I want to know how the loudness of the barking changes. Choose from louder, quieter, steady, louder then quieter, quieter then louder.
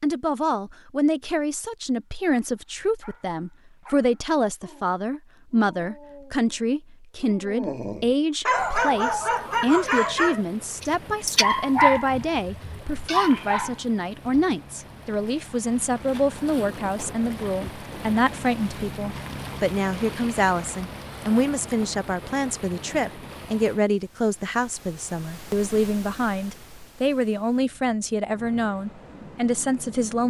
louder.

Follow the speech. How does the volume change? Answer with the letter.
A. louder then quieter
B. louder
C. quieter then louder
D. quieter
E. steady
E.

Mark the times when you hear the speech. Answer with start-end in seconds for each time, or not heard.
0.0-30.2.